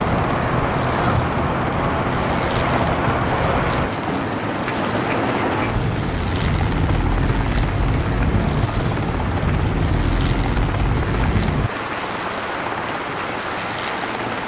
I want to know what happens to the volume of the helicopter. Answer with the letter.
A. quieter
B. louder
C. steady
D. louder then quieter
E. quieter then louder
C.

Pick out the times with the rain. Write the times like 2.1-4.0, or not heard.
0.0-14.4.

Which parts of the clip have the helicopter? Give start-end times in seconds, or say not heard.
0.0-14.4.